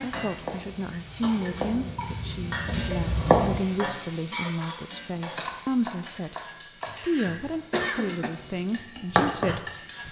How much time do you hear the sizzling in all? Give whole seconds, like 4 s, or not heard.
10 s.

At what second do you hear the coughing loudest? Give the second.
8 s.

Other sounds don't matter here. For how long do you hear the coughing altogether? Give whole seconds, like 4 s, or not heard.
3 s.